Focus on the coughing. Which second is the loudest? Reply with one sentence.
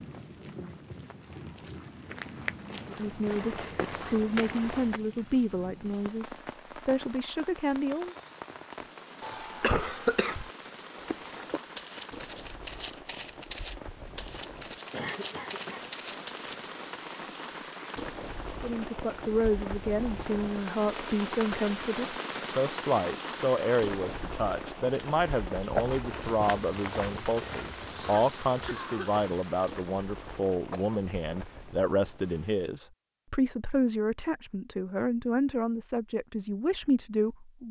The loudest moment of the coughing is at 10 seconds.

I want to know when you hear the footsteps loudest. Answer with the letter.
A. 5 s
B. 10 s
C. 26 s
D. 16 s
C.